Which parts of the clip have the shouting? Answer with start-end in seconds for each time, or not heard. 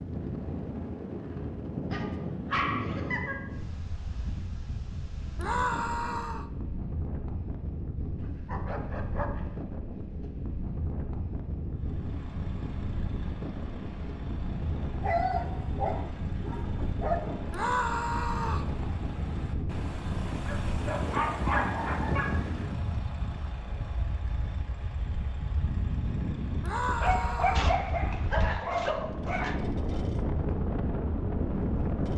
5.3-6.5, 17.5-18.7, 26.6-27.8.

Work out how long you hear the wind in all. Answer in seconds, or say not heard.
32 s.